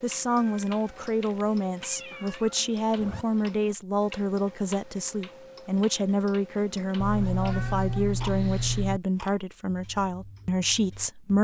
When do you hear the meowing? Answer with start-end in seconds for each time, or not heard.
0.3-2.6, 7.0-9.0.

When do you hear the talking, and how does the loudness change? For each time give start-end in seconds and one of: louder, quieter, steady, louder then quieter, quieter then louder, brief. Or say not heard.
0.0-11.3 steady.